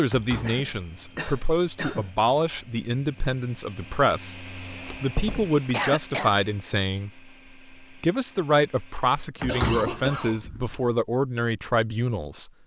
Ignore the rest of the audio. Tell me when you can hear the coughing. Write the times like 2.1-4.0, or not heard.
0.5-2.1, 5.7-6.3, 9.4-10.4.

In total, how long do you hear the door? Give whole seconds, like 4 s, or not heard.
3 s.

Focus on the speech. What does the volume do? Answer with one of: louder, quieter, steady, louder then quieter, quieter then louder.
steady.